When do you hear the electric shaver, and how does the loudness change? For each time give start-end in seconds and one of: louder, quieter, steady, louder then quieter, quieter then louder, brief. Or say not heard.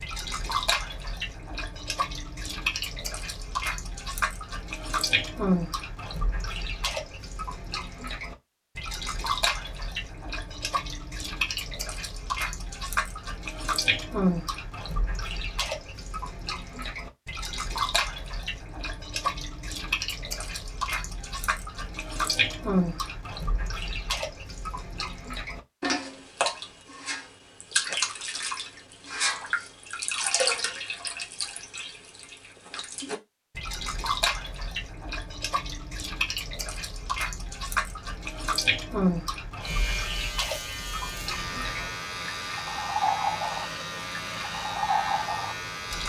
39.6-46.0 steady.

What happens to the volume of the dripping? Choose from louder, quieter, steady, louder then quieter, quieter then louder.
steady.